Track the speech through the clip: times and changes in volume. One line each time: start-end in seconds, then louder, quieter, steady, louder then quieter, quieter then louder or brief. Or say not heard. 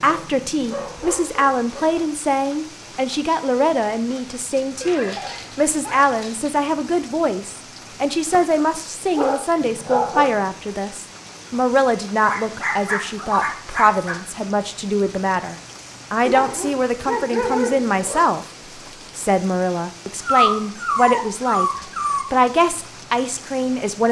0.0-18.4 steady
19.1-21.7 brief
22.3-24.0 brief.